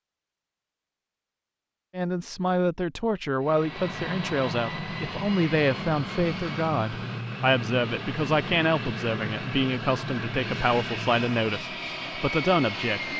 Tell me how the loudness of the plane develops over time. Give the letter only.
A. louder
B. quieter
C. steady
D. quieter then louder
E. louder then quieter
C.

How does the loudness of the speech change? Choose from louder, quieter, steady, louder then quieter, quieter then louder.
steady.